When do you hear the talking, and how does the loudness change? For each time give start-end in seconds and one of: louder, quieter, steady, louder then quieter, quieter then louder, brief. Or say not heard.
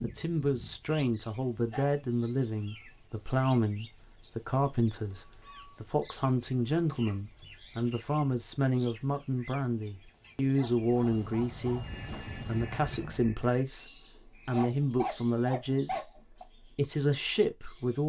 0.0-18.0 steady.